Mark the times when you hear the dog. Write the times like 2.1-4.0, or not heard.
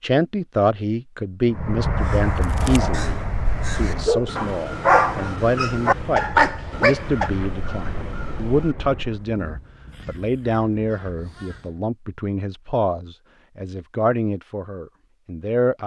3.9-7.3.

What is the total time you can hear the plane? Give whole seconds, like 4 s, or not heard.
8 s.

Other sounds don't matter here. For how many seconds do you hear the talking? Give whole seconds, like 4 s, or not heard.
16 s.